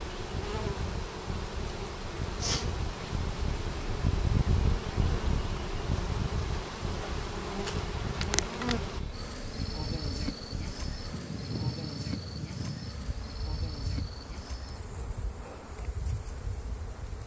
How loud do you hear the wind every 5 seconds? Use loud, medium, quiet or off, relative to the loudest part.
loud, loud, loud, medium.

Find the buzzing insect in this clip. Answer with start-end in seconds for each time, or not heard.
0.0-17.2.